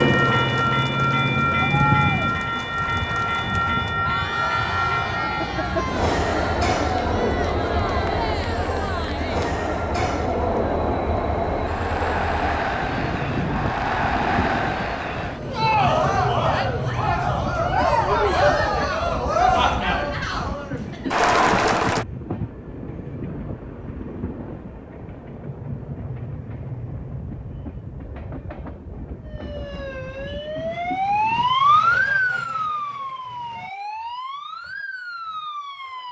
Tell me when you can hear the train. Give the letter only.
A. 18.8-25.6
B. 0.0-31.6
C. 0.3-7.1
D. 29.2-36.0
B.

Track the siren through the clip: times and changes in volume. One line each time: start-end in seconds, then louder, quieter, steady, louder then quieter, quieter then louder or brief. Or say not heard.
29.2-36.0 louder then quieter.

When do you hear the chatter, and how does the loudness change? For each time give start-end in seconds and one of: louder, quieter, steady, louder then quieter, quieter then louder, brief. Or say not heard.
0.0-22.1 louder.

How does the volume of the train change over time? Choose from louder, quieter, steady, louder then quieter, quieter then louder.
quieter.